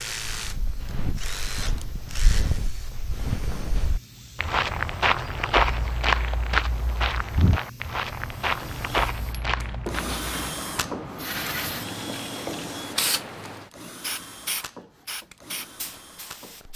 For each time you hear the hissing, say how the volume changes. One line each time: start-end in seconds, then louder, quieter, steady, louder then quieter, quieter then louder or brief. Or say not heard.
0.0-16.7 louder.